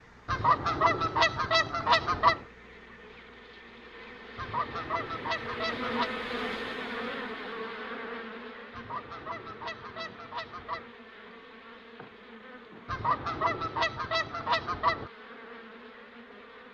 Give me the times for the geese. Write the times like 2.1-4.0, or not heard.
0.2-2.5, 4.3-6.1, 8.7-10.9, 12.8-15.1.